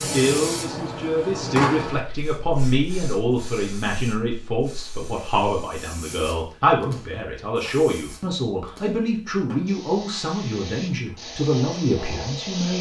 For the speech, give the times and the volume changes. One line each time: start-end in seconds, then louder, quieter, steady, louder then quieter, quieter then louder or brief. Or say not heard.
0.0-12.7 steady.